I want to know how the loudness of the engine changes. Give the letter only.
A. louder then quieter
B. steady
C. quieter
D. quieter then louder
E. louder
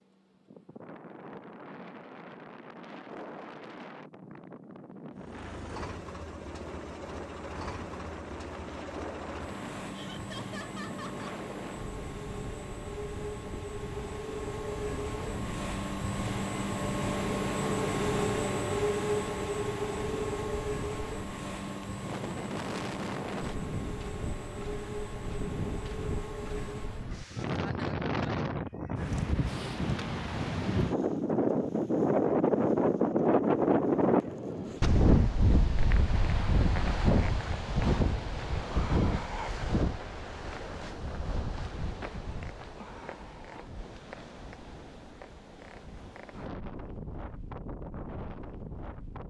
A.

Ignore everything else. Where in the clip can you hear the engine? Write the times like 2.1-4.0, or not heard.
5.2-27.2.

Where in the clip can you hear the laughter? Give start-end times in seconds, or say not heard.
9.9-11.4.